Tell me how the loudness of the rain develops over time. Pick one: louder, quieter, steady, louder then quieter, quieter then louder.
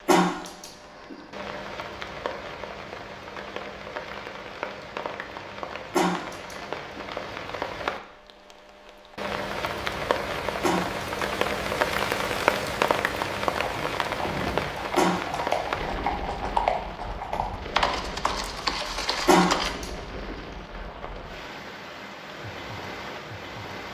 louder then quieter.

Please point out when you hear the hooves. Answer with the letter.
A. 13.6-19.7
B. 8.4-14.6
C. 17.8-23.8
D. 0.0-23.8
A.